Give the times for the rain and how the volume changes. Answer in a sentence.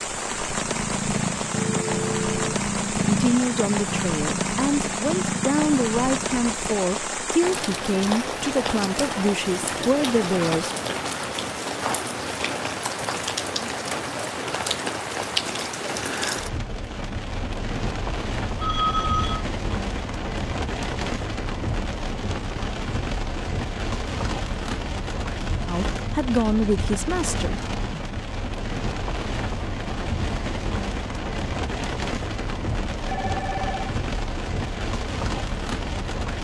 You can hear the rain from 0.0 to 36.4 s, at a steady volume.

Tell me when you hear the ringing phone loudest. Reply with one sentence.
The volume of the ringing phone peaks at 19 seconds.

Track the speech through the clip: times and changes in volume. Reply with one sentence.
You can hear the speech from 3.0 to 10.8 s, at a steady volume; and briefly from 25.6 to 27.6 s.